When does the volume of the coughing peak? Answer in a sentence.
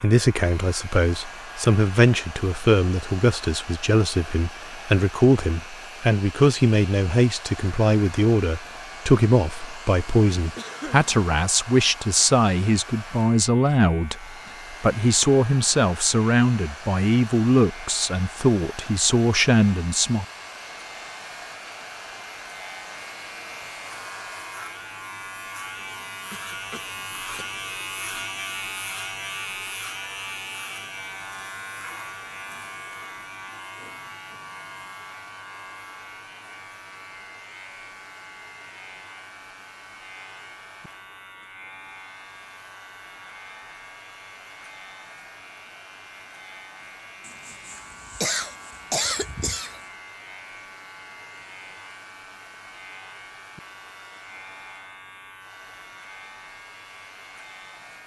The loudest moment of the coughing is at 49 seconds.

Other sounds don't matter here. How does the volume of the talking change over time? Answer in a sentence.
The volume of the talking stays about the same.